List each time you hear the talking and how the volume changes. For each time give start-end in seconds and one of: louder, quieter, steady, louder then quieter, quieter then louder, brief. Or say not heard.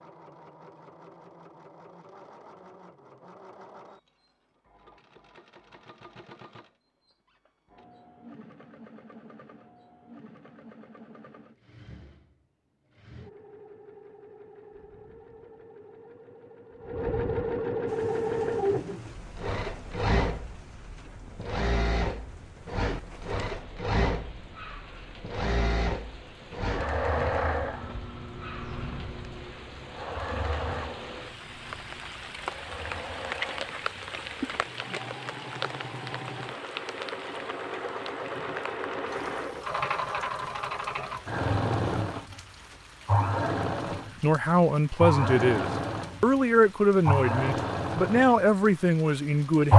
44.2-49.7 steady.